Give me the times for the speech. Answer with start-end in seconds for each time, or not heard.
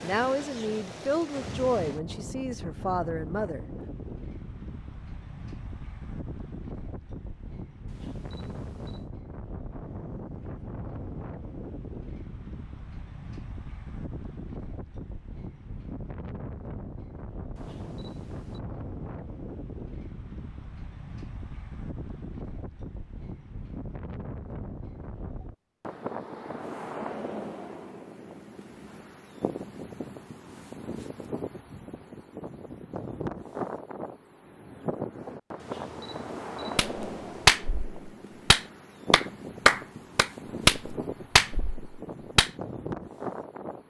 0.0-3.6.